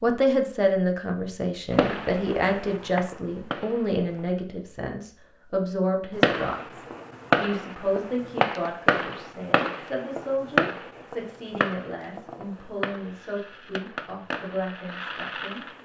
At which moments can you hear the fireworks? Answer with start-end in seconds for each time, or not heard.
1.7-4.2, 6.2-15.7.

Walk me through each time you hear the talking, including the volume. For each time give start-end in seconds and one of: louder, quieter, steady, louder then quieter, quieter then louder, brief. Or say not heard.
0.0-15.7 quieter.